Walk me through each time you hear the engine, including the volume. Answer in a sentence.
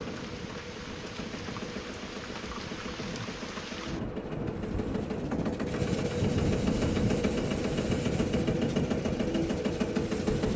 The engine can be heard from 0.0 to 10.5 s, getting louder.